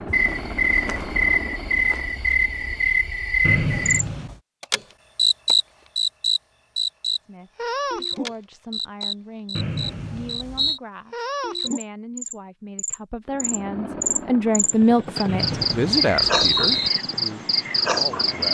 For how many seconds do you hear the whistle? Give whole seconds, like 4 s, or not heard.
4 s.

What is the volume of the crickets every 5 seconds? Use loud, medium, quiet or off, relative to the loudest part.
loud, loud, medium, loud.